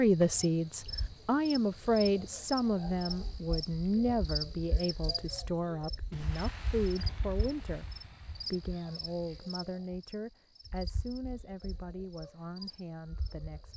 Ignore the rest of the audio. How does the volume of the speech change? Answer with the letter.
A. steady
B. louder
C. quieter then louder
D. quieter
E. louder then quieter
D.